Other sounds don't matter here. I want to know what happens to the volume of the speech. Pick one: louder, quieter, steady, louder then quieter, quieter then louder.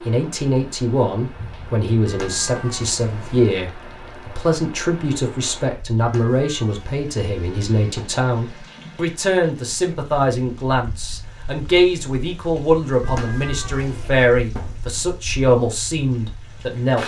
steady.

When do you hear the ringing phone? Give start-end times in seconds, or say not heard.
not heard.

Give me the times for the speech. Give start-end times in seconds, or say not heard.
0.1-17.0.